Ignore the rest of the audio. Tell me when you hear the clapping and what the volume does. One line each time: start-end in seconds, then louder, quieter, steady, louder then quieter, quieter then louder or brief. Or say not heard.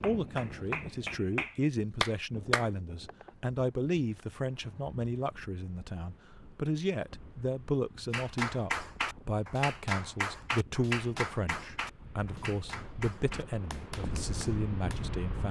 0.0-2.7 brief
8.1-15.2 quieter.